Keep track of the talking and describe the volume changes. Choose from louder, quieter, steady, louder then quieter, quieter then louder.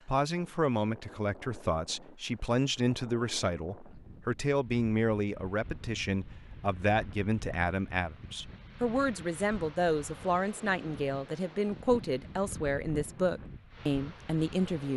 steady.